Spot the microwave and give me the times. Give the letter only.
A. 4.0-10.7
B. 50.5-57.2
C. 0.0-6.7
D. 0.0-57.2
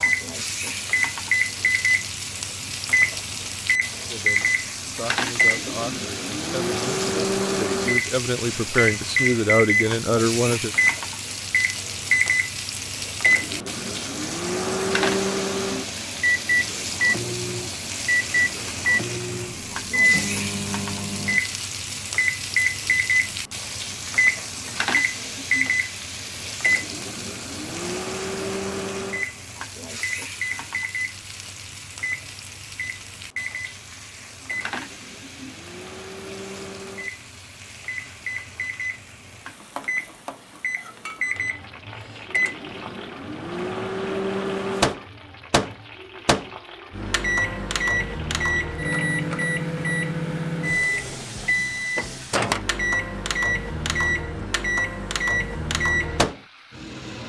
D.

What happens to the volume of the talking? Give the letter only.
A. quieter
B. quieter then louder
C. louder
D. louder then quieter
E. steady
C.